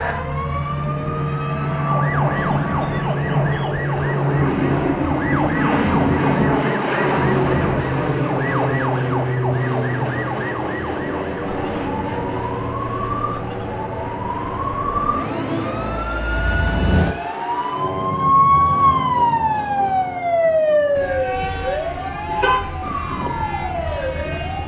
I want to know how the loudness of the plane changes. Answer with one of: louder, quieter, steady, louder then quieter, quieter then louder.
quieter.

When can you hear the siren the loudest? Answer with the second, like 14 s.
19 s.